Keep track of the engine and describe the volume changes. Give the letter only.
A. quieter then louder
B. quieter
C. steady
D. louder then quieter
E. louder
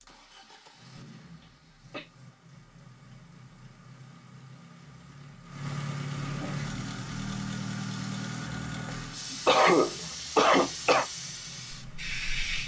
D.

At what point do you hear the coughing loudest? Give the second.
10 s.